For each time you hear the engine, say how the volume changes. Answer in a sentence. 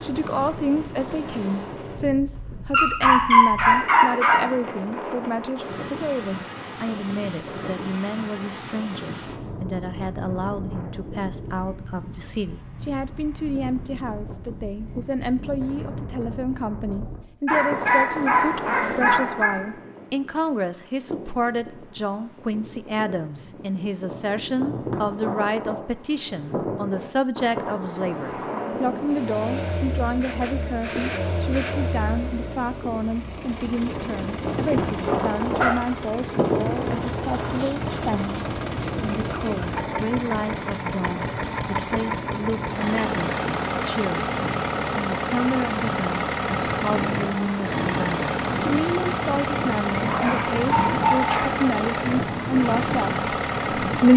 The engine can be heard from 29.1 to 54.1 s, getting louder.